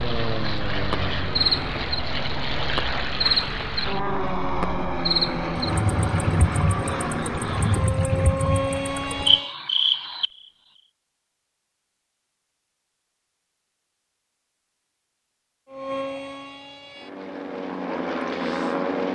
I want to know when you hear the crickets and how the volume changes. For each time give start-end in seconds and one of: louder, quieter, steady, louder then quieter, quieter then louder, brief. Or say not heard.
0.0-10.2 steady.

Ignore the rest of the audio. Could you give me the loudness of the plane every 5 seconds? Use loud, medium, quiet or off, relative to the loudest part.
loud, loud, off, loud.